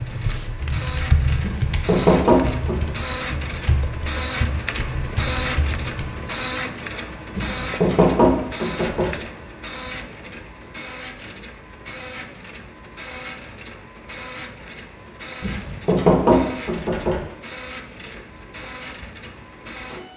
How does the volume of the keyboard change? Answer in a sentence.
The volume of the keyboard goes down.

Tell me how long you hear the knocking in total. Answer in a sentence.
The knocking can be heard for 5 seconds in total.